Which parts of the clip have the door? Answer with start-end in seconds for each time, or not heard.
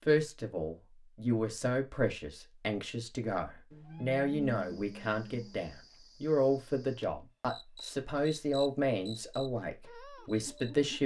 not heard.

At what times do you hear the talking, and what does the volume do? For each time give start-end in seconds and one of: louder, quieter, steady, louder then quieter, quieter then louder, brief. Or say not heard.
0.1-11.0 steady.